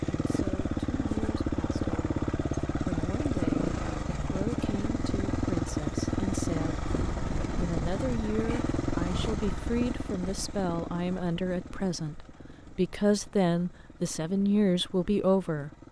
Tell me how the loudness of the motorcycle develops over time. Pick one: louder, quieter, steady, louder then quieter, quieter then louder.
quieter.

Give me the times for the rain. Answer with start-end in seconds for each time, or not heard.
not heard.